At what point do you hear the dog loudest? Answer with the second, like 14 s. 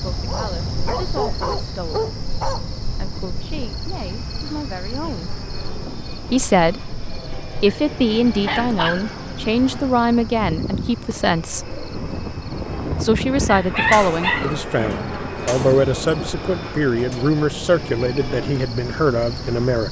14 s.